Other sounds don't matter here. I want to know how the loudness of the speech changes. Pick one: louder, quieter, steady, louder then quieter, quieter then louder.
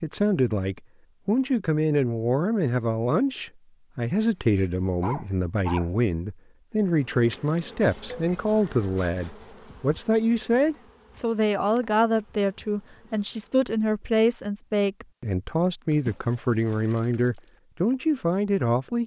steady.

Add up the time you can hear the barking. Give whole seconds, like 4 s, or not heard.
2 s.